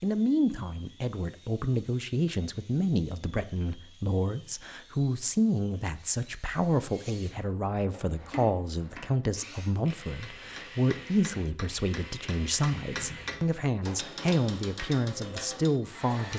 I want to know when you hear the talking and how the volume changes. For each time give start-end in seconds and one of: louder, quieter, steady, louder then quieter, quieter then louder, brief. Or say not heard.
0.0-16.3 steady.